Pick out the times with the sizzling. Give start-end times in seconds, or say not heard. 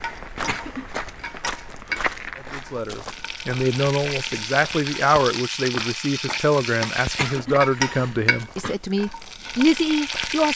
0.0-10.5.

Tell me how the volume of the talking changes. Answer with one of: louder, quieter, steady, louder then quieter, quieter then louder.
steady.